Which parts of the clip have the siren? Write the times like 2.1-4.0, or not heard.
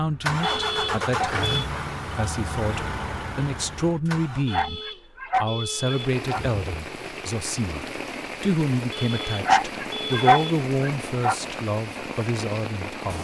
not heard.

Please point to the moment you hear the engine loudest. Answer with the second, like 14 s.
1 s.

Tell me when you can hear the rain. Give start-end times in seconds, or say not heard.
5.7-13.1.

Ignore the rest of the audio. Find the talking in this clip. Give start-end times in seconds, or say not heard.
0.0-13.1.